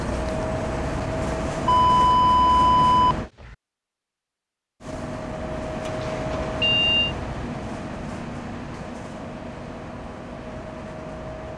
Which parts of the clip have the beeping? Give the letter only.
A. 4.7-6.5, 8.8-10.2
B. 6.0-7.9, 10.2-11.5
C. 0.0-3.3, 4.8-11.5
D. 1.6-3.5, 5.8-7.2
D.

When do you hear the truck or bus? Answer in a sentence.
You can hear the truck or bus from 0.0 to 3.3 s and from 4.8 to 11.5 s.